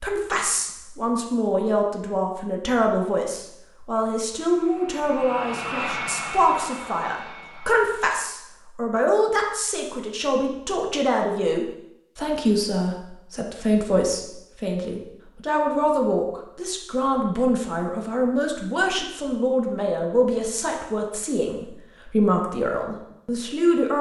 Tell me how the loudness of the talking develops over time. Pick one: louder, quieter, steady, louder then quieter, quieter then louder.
steady.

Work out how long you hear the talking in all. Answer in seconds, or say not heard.
24 s.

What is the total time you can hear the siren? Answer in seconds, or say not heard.
not heard.